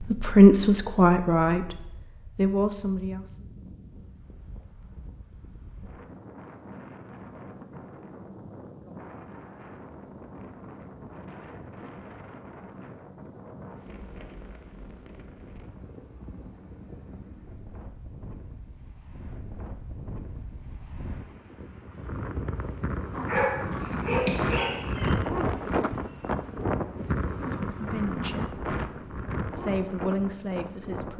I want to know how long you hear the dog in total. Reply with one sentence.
The dog can be heard for 2 seconds in total.